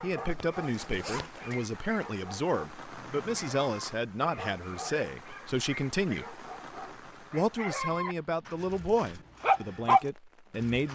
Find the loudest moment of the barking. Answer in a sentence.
The loudest moment of the barking is at 10 seconds.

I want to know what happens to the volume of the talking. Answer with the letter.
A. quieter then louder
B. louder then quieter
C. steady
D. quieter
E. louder
C.